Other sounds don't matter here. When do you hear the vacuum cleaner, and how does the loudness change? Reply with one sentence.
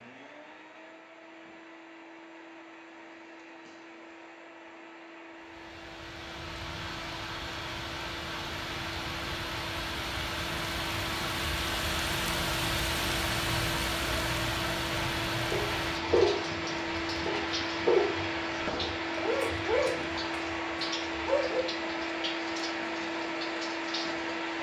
You can hear the vacuum cleaner from 0.0 to 24.5 s, getting louder.